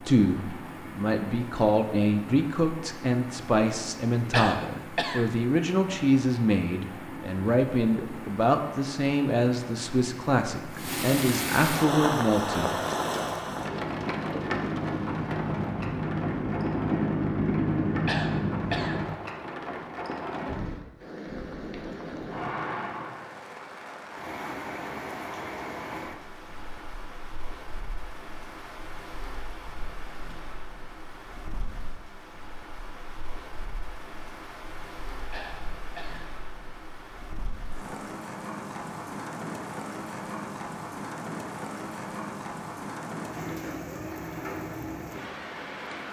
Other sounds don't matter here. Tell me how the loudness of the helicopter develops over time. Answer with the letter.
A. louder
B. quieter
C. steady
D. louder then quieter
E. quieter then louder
A.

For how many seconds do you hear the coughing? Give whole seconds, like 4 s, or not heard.
3 s.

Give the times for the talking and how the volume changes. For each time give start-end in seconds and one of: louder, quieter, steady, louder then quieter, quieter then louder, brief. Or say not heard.
0.0-12.8 steady.